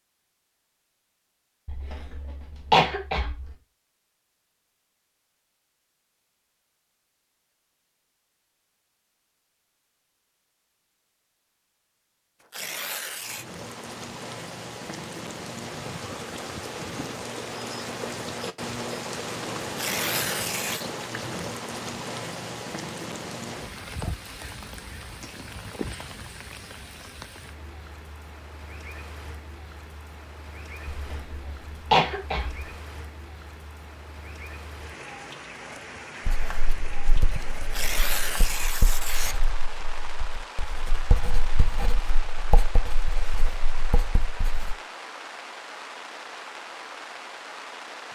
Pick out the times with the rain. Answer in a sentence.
You can hear the rain from 13.1 to 48.0 s.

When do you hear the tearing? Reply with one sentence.
You can hear the tearing from 12.4 to 13.4 s, from 19.6 to 20.9 s and from 37.6 to 39.4 s.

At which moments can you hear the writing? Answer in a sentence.
The writing can be heard from 36.2 to 44.8 s.